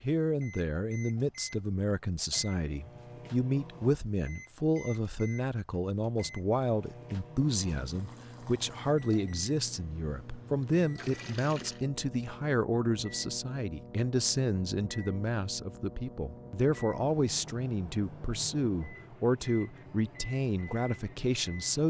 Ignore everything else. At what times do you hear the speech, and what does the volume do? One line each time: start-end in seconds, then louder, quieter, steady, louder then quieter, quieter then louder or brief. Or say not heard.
0.0-21.8 steady.